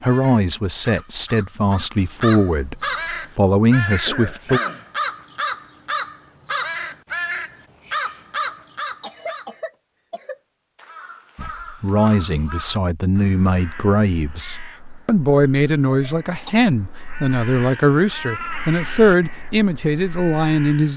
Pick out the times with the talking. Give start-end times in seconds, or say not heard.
0.0-4.6, 11.3-20.9.